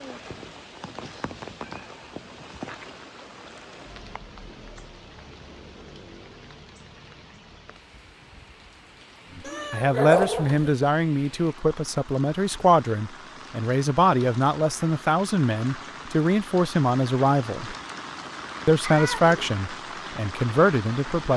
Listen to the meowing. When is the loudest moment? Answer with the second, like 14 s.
10 s.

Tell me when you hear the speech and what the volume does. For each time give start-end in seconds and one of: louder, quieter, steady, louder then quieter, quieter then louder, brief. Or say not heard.
9.3-17.8 steady
18.6-21.3 brief.